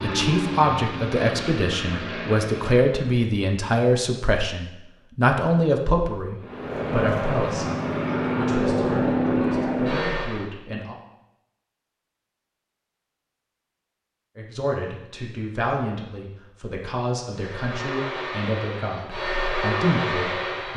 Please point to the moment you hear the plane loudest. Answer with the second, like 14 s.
9 s.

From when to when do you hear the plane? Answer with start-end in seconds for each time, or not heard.
0.0-3.2, 6.4-10.5, 17.3-20.7.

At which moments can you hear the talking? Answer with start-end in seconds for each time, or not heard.
0.0-10.9, 14.3-20.7.